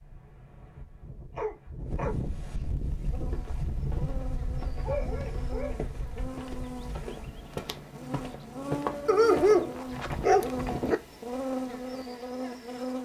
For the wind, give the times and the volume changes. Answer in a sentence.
The wind can be heard from 0.0 to 7.5 s, getting louder then quieter.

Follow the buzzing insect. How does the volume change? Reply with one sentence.
The volume of the buzzing insect goes up.